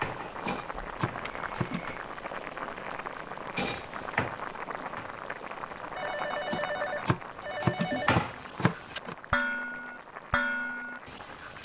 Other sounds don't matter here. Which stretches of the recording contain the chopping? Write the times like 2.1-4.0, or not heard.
0.4-1.9, 6.5-9.2.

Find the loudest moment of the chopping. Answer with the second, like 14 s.
8 s.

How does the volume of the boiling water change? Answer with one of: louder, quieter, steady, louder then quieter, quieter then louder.
quieter.